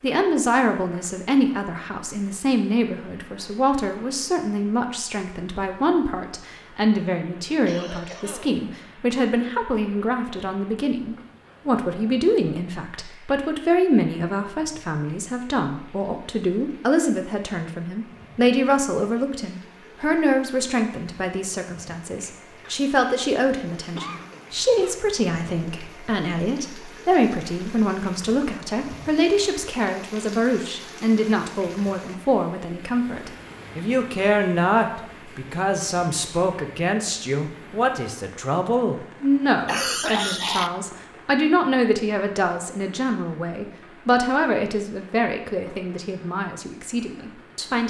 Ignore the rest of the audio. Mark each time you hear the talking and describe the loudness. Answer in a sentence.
You can hear the talking from 0.0 to 47.8 s, at a steady volume.